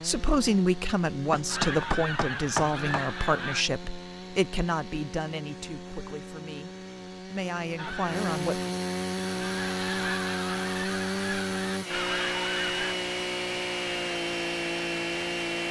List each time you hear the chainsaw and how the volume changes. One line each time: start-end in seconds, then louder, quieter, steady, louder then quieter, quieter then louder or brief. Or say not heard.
0.0-15.6 louder.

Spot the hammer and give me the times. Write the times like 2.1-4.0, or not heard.
1.3-3.0.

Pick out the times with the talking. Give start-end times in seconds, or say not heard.
0.0-8.6.